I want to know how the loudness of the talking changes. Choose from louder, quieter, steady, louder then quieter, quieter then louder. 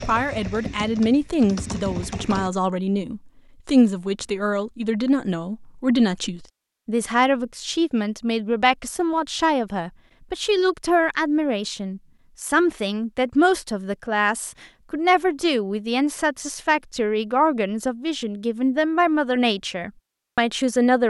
steady.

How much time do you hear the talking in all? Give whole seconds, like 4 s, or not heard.
21 s.